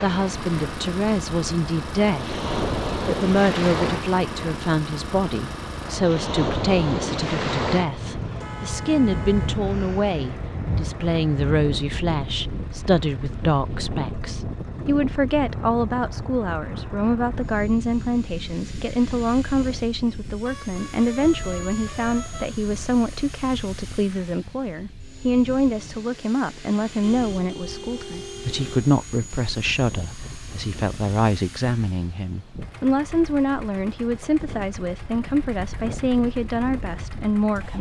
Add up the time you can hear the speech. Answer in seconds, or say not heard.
37 s.